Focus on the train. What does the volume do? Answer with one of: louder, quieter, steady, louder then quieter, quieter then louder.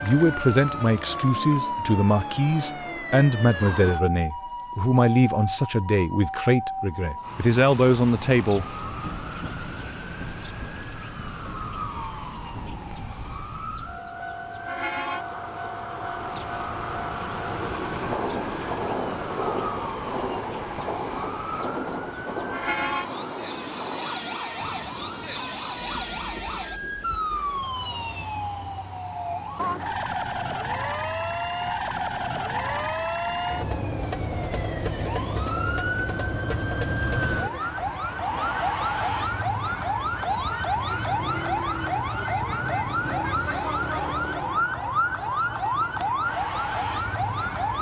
louder then quieter.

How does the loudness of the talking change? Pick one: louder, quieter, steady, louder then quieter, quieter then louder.
steady.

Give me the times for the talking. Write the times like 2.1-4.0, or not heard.
0.0-8.7.